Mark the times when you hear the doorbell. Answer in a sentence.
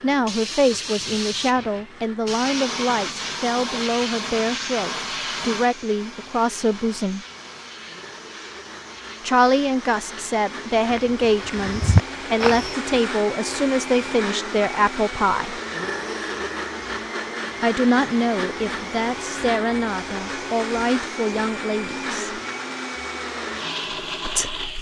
You can't hear the doorbell here.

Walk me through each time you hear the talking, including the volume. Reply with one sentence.
You can hear the talking from 0.0 to 7.2 s, at a steady volume; from 9.2 to 15.6 s, at a steady volume; from 17.6 to 22.4 s, at a steady volume; and briefly from 24.2 to 24.7 s.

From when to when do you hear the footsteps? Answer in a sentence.
You can hear the footsteps from 10.8 to 12.8 s.